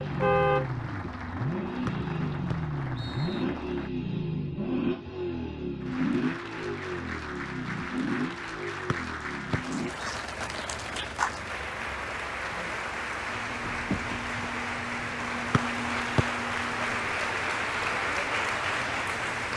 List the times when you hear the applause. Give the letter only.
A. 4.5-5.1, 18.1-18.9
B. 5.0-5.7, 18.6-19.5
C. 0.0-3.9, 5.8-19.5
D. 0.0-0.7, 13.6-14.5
C.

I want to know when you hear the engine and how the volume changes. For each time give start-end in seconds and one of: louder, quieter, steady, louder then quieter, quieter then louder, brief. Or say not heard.
0.0-19.5 quieter.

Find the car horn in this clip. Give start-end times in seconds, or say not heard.
0.0-0.7, 13.6-14.5.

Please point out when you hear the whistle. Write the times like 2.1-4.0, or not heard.
1.9-3.5, 8.9-10.1, 15.5-16.2.